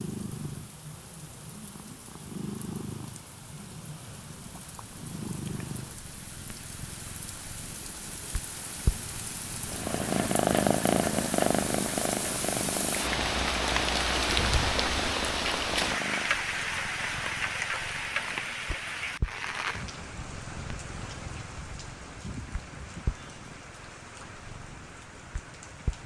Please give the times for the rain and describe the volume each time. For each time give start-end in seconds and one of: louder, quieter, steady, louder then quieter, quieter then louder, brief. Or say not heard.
0.0-26.0 louder then quieter.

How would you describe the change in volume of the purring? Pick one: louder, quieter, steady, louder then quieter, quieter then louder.
louder then quieter.